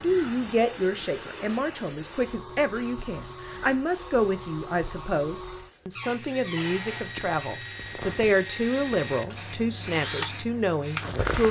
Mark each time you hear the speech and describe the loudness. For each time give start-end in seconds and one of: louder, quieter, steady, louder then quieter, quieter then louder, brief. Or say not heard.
0.0-11.4 steady.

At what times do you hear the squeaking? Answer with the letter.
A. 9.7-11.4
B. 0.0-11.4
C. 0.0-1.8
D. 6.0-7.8
D.